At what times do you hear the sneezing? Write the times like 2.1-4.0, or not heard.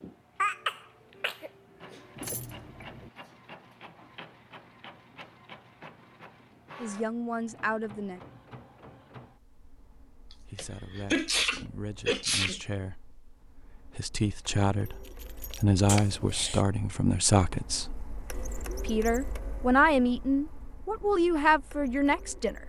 0.4-2.4, 10.3-12.6, 15.8-16.6.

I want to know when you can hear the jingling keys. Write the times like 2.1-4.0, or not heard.
2.1-3.1, 14.8-15.7.